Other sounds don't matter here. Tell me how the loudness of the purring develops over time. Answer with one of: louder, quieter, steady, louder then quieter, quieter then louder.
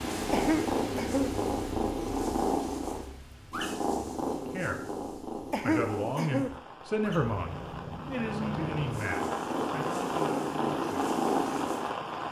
quieter then louder.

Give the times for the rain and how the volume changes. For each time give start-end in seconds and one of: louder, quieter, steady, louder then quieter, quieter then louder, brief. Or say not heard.
0.0-12.2 quieter then louder.